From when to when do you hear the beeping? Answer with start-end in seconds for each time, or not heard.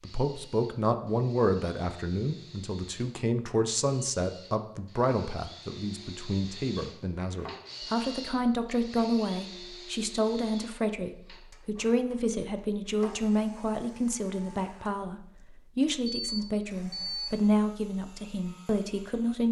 16.1-17.4.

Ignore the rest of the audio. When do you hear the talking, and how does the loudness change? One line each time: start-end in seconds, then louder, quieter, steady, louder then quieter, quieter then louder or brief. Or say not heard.
0.0-19.4 steady.